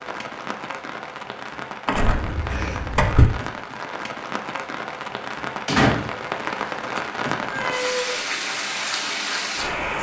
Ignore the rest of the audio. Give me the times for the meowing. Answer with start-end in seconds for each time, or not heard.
2.0-3.2, 7.4-8.2.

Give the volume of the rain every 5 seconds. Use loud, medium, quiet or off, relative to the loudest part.
medium, loud.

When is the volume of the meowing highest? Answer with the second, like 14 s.
8 s.